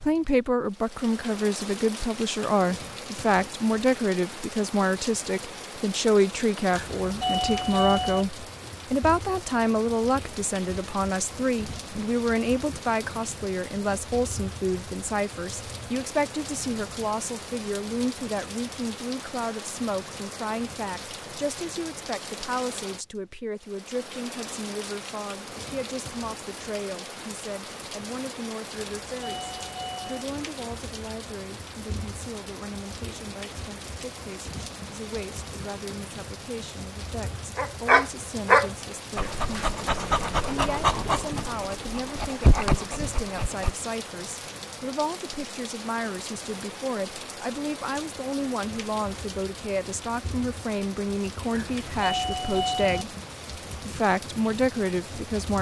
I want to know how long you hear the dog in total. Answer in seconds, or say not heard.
6 s.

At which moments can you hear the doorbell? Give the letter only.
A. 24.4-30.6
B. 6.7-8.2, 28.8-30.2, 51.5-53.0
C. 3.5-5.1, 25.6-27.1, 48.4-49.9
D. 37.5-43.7
B.